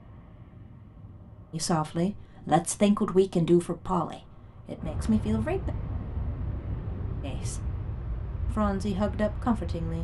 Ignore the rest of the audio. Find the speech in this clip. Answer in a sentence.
You can hear the speech from 1.5 to 5.7 s, from 7.2 to 7.7 s and from 8.4 to 9.9 s.